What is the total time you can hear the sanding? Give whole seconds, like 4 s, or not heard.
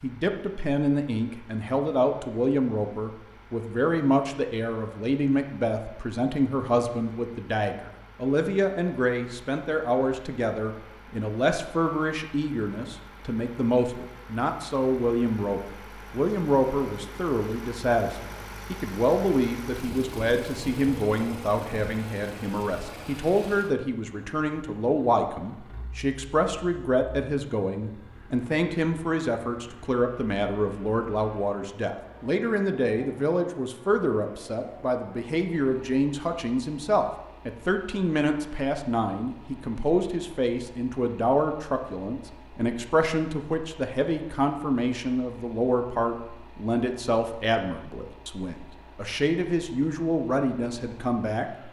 not heard.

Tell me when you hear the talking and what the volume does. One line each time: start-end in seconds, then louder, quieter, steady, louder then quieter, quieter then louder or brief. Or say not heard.
0.0-51.5 steady.